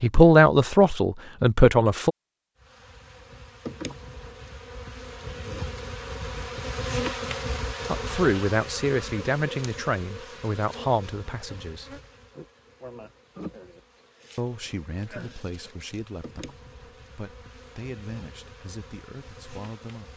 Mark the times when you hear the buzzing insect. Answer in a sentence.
You can hear the buzzing insect from 2.5 to 20.1 s.